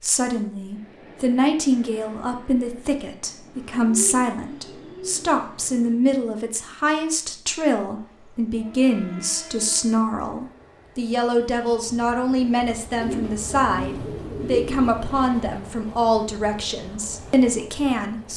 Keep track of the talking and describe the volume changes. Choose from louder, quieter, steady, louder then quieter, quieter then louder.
steady.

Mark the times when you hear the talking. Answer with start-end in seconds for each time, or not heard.
0.0-18.3.